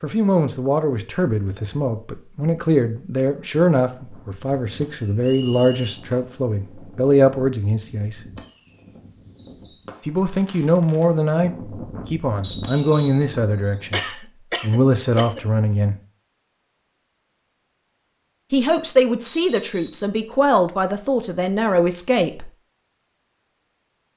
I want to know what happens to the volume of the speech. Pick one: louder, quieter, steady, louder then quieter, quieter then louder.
steady.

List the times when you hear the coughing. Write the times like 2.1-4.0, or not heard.
13.9-15.4.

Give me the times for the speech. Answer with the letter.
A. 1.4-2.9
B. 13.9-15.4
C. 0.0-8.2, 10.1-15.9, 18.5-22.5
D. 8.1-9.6
C.